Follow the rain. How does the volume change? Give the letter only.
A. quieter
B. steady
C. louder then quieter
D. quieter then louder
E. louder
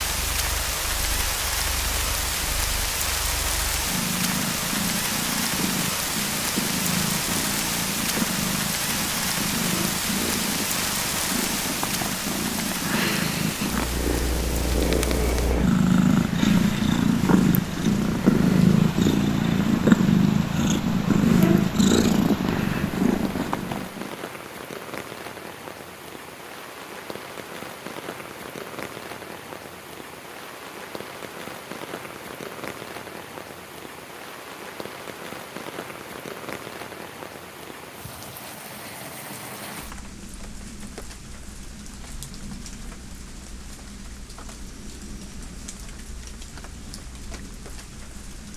A.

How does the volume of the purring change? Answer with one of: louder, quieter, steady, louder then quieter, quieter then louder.
louder.